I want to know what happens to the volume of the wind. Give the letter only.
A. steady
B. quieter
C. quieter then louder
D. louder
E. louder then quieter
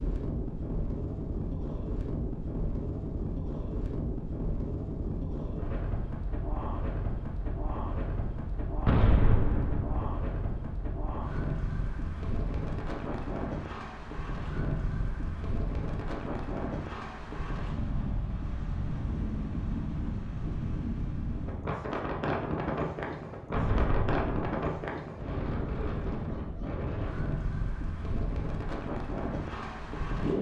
A.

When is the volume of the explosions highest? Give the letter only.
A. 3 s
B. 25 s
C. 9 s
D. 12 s
C.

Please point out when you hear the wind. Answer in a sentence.
You can hear the wind from 0.0 to 30.3 s.